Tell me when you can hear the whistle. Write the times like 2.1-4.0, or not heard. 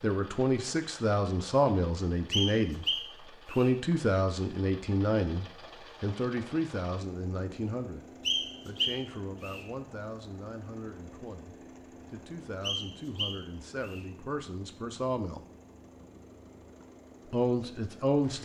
2.3-3.7, 8.2-9.7, 12.6-14.1.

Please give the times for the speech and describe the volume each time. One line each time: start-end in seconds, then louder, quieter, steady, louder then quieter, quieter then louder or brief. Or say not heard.
0.0-15.4 quieter
17.3-18.4 brief.